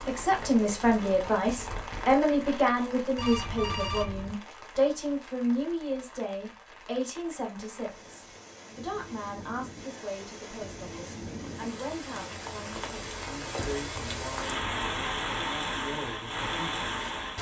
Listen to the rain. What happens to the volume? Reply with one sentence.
The loudness of the rain goes down, then up.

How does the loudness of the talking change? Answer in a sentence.
The loudness of the talking goes down.